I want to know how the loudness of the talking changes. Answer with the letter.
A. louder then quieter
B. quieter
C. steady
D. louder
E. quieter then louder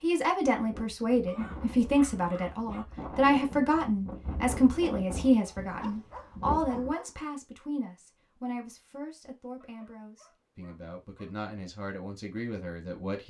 B.